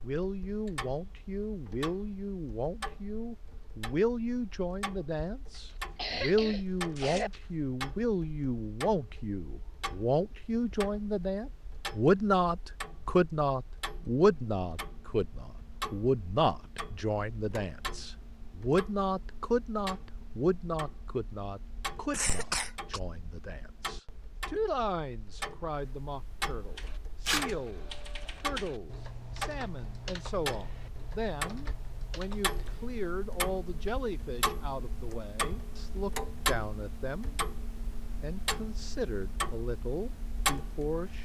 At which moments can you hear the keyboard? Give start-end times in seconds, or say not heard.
26.7-33.0.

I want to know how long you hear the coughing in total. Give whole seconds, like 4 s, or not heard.
3 s.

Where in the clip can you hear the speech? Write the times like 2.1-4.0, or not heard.
0.0-37.4, 38.2-41.2.